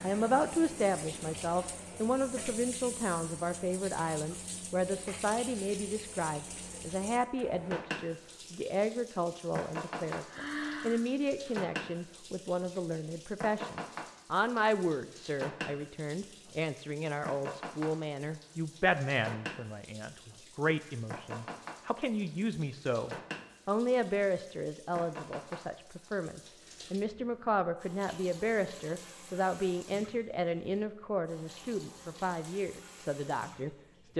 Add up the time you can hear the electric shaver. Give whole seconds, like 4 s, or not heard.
not heard.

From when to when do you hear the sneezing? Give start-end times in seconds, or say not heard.
10.2-11.6.